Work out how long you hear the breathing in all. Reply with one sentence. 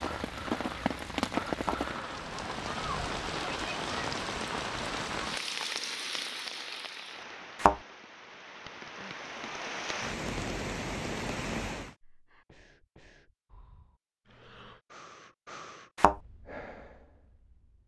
The breathing can be heard for 8 seconds in total.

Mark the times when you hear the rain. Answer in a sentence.
You can hear the rain from 0.0 to 11.9 s.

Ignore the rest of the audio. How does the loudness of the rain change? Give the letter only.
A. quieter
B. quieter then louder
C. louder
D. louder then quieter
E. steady
B.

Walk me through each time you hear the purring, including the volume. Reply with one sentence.
You can't hear the purring here.